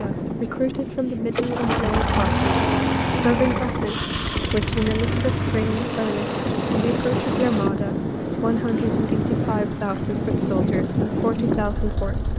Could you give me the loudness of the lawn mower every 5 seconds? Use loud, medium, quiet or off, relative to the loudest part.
loud, medium, medium.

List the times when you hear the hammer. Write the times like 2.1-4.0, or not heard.
not heard.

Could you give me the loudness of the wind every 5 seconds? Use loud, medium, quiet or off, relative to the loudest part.
medium, loud, loud.